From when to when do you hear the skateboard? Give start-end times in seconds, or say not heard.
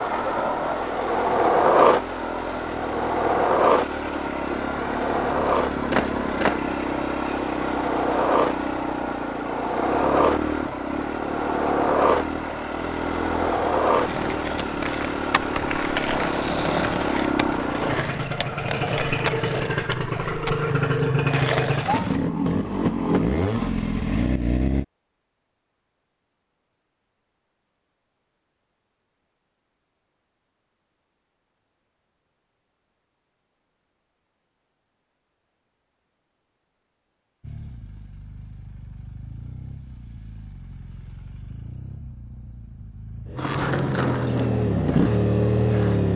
0.0-22.2, 43.4-46.1.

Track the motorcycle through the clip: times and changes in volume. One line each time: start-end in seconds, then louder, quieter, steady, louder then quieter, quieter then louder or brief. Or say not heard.
0.0-24.9 louder
37.4-46.1 louder.